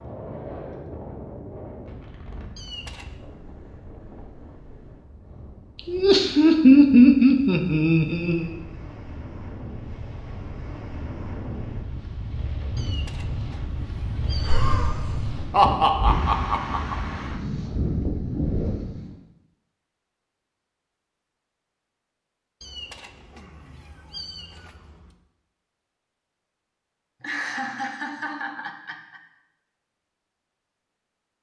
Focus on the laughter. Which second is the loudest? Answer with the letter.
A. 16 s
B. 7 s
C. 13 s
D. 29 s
B.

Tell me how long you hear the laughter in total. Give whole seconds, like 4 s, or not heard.
7 s.